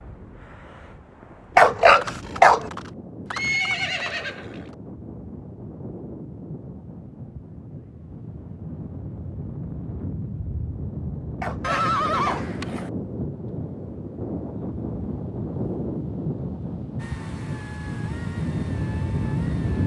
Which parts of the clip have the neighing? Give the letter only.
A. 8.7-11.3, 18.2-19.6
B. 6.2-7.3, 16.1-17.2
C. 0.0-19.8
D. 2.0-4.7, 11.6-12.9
D.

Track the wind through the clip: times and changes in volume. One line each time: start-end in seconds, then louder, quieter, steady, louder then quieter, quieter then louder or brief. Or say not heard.
0.0-19.8 louder.